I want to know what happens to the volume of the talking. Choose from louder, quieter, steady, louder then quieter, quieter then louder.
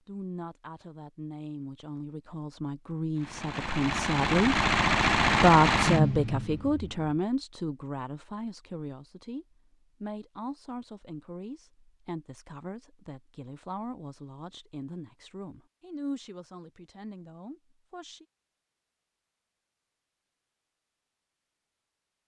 louder then quieter.